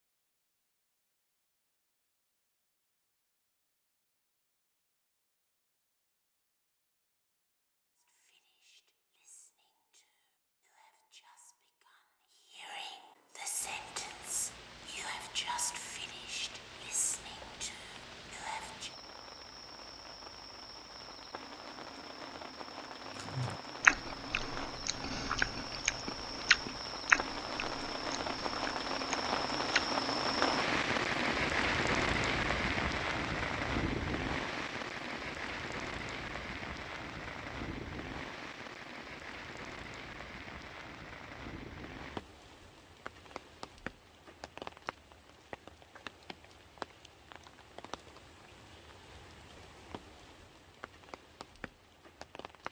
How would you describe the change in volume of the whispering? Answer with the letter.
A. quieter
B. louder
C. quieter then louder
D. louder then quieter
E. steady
B.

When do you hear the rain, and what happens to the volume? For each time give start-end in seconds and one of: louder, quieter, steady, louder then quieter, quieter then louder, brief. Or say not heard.
13.6-52.6 louder then quieter.